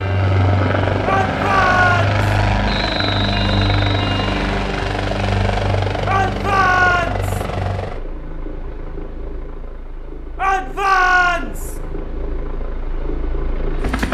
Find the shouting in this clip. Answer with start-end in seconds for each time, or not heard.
1.1-2.2, 6.0-7.5, 10.3-11.8.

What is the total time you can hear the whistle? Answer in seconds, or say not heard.
2 s.